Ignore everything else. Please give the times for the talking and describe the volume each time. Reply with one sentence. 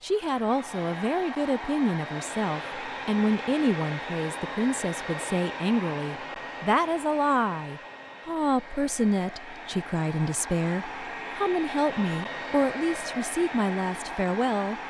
The talking can be heard from 0.0 to 14.8 s, at a steady volume.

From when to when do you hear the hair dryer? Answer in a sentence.
The hair dryer can be heard from 0.0 to 14.8 s.